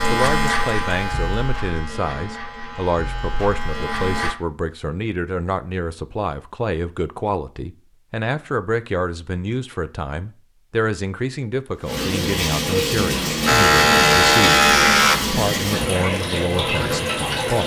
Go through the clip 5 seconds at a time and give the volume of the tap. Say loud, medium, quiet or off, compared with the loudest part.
off, off, loud, loud.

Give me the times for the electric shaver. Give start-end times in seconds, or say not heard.
0.0-4.3, 13.4-15.2.